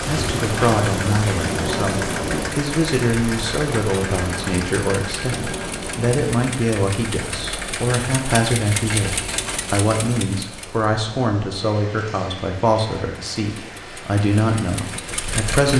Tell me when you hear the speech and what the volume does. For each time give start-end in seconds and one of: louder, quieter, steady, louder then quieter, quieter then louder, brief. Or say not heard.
0.1-15.7 steady.